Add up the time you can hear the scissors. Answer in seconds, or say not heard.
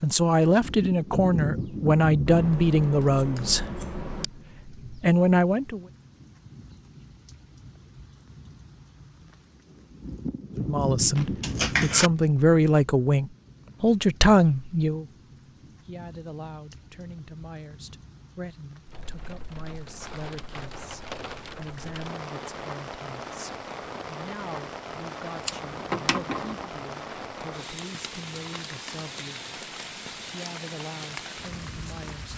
4 s.